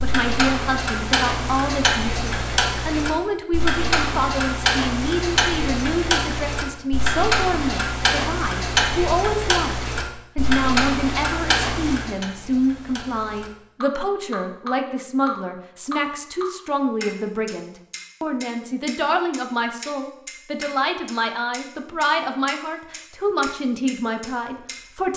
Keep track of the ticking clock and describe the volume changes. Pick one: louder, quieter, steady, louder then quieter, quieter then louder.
quieter.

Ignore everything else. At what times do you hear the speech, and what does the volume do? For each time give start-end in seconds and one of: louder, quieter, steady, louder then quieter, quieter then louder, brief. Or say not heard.
0.0-25.1 steady.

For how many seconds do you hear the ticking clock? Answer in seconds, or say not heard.
25 s.